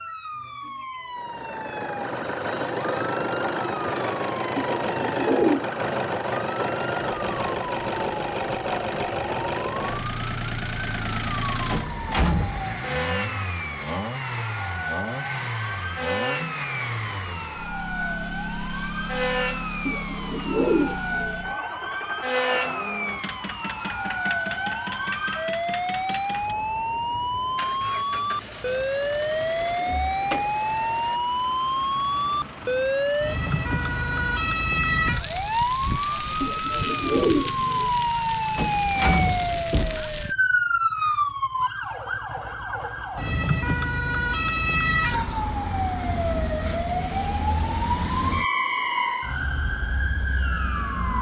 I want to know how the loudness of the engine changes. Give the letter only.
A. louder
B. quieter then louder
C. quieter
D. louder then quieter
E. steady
C.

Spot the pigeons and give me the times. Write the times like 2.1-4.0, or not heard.
4.5-5.8, 19.9-21.4, 36.4-37.9.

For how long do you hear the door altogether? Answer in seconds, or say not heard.
3 s.